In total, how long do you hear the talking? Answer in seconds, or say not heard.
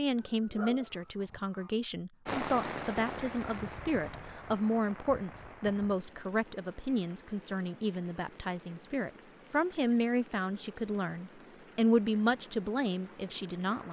14 s.